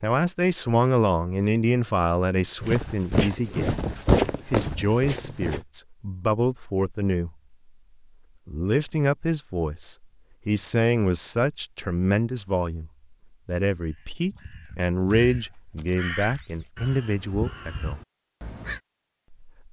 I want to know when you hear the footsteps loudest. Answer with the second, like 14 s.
4 s.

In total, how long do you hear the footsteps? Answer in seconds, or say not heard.
3 s.